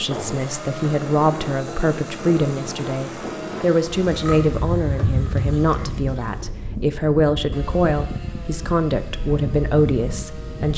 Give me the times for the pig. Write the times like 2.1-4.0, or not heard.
4.0-6.6.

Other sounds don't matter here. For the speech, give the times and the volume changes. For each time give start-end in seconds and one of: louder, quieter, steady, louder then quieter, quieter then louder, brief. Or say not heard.
0.0-10.7 steady.